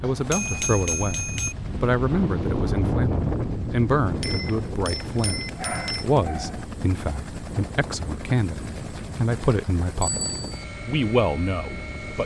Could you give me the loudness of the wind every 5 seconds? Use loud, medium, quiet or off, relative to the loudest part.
loud, medium, medium.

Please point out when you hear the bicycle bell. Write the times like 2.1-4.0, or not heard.
0.0-1.6, 4.2-6.2, 10.0-10.7.